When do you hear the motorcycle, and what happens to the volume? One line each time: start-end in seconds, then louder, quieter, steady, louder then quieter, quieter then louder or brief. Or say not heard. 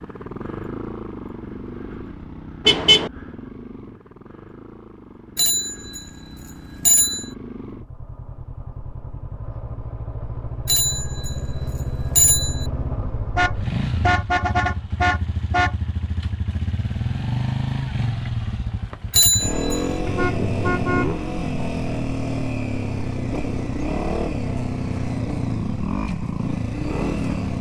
0.0-27.5 louder.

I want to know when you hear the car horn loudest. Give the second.
3 s.